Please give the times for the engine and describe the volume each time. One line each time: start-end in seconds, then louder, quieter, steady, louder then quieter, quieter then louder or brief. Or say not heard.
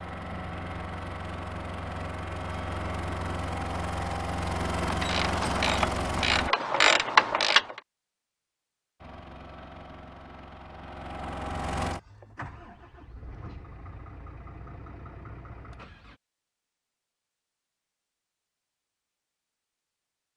0.0-6.5 louder
9.0-16.2 louder then quieter.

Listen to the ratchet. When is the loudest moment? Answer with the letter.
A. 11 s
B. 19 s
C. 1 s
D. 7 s
D.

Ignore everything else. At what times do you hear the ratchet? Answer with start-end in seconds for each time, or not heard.
5.0-7.8.